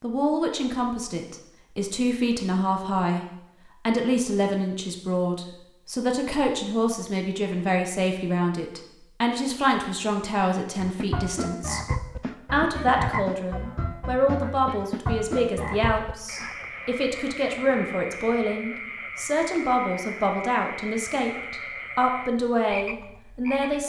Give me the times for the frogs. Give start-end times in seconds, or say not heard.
10.8-23.8.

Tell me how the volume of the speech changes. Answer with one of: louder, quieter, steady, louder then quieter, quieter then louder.
steady.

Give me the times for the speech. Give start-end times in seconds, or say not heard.
0.0-3.2, 3.9-11.8, 12.5-23.8.